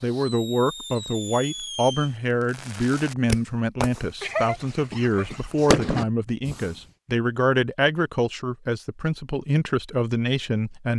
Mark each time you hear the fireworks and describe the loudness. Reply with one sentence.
You can hear the fireworks from 0.0 to 6.7 s, getting louder.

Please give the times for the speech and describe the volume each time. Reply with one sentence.
The speech can be heard from 0.0 to 10.9 s, at a steady volume.